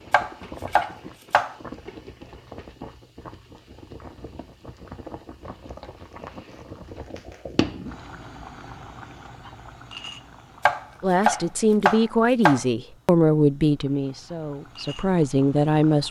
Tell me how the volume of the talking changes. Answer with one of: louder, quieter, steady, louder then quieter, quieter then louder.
quieter then louder.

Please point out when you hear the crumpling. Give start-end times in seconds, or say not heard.
5.7-7.5.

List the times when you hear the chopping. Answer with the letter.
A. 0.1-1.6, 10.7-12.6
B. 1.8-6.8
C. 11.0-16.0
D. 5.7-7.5
A.